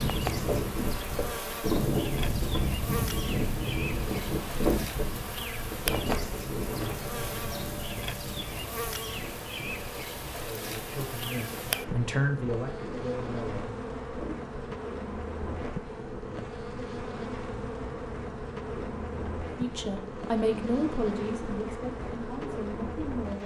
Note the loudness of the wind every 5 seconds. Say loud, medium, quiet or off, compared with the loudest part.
loud, medium, quiet, quiet, quiet.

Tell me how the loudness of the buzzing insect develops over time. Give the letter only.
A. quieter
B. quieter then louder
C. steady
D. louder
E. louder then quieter
C.